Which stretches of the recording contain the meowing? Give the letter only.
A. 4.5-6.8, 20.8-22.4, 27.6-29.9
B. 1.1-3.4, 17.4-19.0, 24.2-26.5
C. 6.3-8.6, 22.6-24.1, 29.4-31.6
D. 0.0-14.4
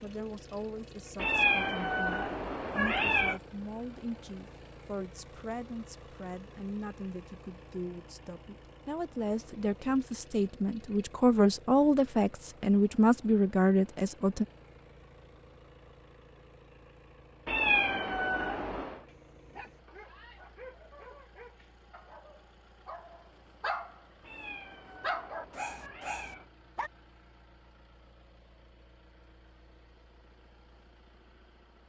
B.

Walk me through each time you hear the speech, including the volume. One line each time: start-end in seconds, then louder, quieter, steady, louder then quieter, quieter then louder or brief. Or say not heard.
0.0-14.4 louder.